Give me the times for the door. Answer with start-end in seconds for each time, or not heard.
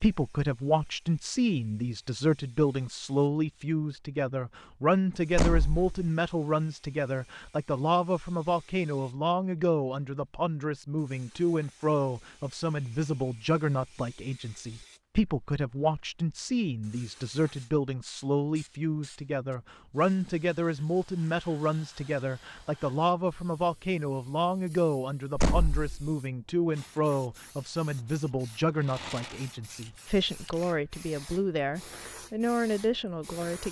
5.3-6.0, 25.4-26.1.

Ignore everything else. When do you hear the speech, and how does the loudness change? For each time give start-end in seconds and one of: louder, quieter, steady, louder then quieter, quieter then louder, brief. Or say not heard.
0.0-33.6 steady.